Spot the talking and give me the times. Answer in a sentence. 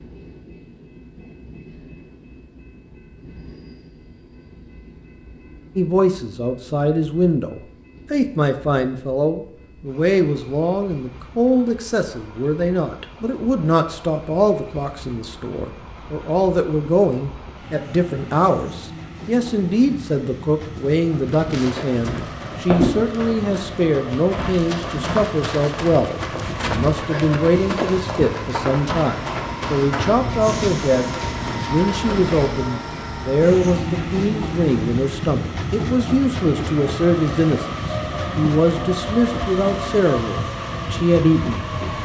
The talking can be heard from 5.8 to 41.6 s.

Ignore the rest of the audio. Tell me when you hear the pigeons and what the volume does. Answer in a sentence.
The pigeons can't be heard in this clip.